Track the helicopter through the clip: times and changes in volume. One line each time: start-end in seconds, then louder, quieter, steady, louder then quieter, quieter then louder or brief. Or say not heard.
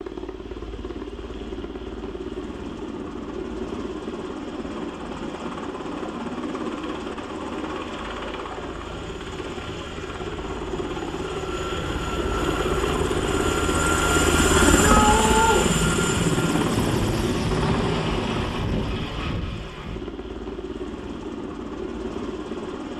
0.0-22.9 louder then quieter.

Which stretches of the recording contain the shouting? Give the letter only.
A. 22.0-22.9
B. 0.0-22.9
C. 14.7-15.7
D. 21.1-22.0
C.